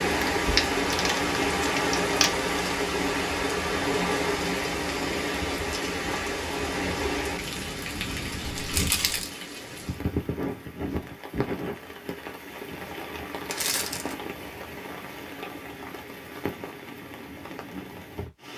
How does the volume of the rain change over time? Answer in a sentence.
The loudness of the rain goes down.